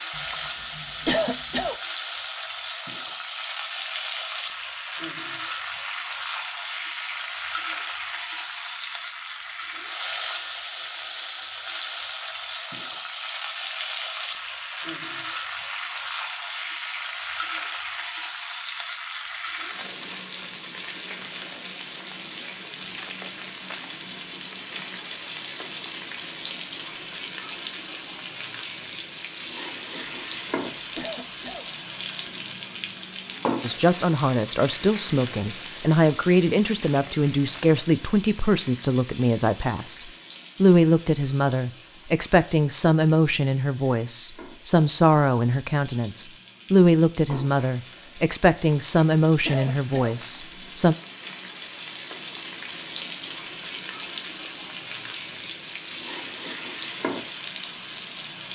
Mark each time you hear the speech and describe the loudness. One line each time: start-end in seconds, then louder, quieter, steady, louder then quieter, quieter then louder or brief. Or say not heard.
33.6-51.0 steady.